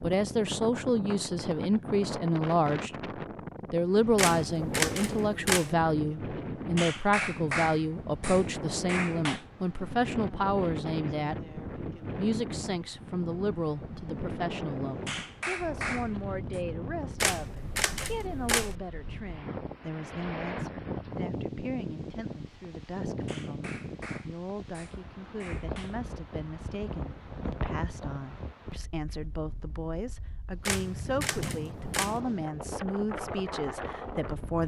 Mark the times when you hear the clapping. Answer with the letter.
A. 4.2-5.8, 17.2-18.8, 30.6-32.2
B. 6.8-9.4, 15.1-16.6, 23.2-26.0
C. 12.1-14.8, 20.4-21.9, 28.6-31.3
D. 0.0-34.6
B.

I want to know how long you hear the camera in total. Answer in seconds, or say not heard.
5 s.